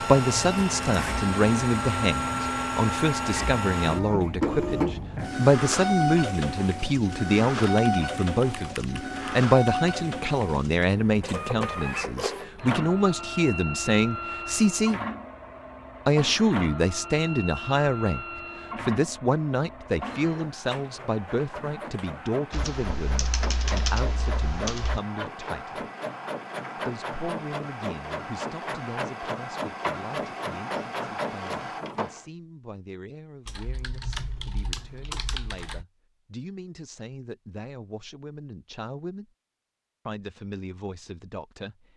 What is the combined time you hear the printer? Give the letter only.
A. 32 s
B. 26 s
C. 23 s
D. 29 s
A.